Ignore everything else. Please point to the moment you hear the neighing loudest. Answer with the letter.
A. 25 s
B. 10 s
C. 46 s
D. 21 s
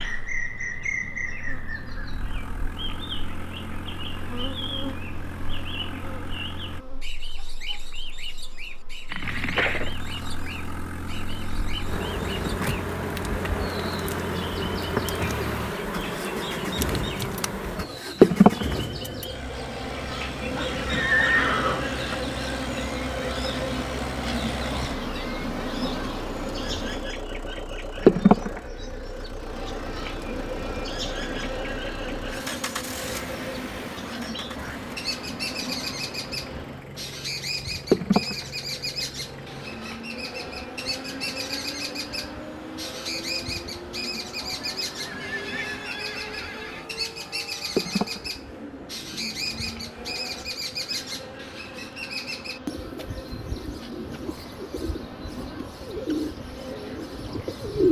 D.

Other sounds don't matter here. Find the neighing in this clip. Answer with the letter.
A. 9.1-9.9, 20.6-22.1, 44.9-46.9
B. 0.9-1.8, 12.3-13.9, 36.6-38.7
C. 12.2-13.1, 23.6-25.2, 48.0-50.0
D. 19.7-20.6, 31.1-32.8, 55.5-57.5
A.